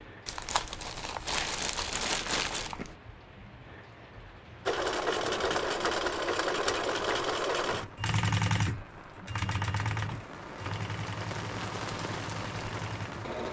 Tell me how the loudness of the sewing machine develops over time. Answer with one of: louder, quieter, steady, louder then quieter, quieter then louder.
quieter.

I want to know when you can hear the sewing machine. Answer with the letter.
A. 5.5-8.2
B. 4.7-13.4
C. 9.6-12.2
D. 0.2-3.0
B.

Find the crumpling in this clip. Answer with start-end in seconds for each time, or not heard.
0.2-3.0.